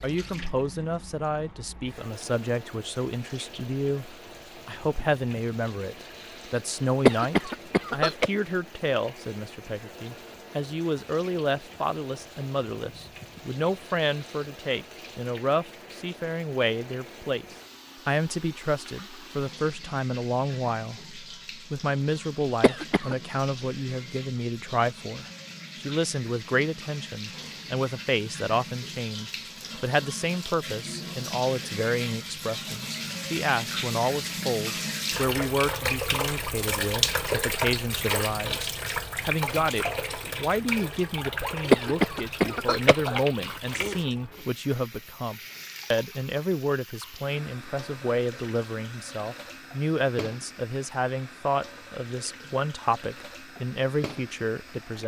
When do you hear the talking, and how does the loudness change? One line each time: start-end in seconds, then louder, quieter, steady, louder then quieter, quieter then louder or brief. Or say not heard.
0.0-55.0 steady.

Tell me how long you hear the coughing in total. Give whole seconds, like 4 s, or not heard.
3 s.